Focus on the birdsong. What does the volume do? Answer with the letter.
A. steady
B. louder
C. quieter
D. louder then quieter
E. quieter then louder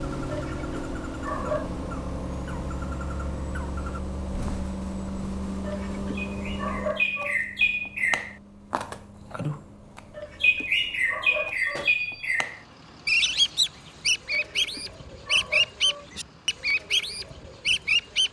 B.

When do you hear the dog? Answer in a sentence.
You can hear the dog from 0.2 to 1.7 s, from 5.6 to 7.4 s, from 10.1 to 11.9 s and from 14.3 to 16.1 s.